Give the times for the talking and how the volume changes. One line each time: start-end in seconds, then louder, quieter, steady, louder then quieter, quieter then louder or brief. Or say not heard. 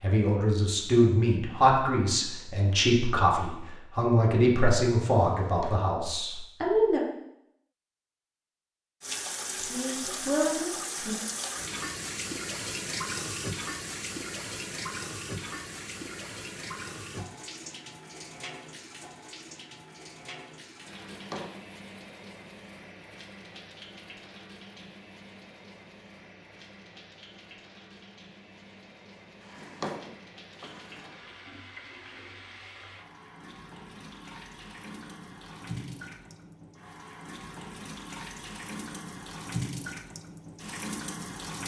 0.0-7.0 quieter
9.6-11.2 brief.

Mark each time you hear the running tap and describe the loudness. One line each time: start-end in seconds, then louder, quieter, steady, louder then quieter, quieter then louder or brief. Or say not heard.
9.0-41.6 quieter then louder.